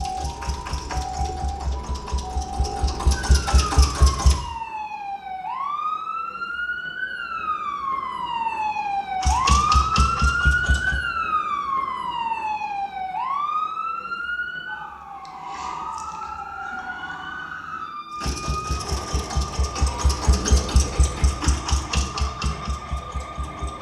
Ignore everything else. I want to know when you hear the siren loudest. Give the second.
10 s.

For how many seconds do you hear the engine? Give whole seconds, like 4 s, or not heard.
12 s.